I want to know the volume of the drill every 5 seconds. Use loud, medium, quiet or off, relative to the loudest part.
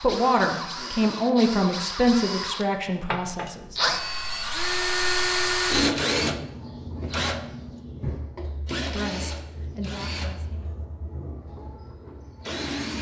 loud, loud, medium.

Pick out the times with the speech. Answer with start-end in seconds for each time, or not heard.
0.0-3.8, 8.9-10.8.